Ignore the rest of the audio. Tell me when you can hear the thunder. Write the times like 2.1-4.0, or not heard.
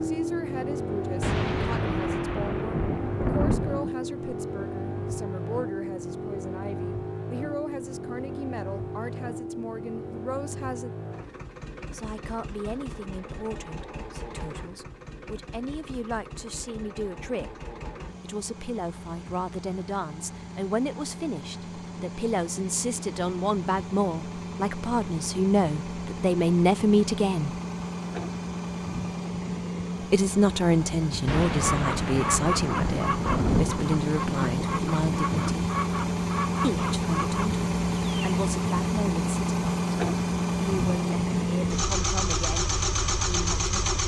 1.2-4.0, 31.2-35.6.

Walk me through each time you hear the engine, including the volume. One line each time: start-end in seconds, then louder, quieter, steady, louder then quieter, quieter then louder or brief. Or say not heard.
0.0-44.0 quieter then louder.